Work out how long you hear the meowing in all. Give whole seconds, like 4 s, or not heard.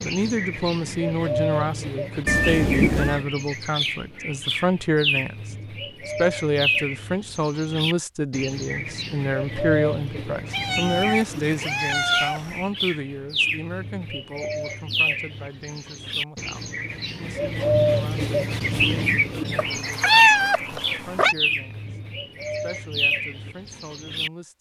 5 s.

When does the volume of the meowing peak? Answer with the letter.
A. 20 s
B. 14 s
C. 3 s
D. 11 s
A.